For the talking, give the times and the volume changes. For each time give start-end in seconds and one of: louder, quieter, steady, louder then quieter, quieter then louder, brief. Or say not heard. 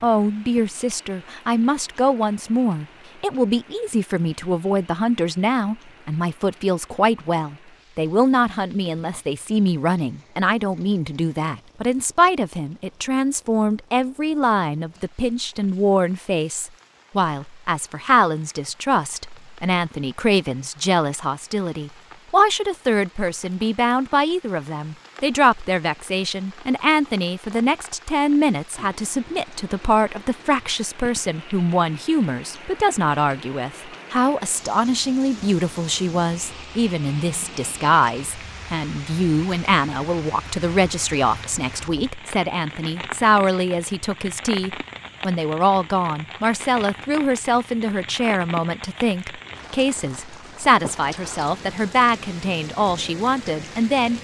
0.0-54.1 steady.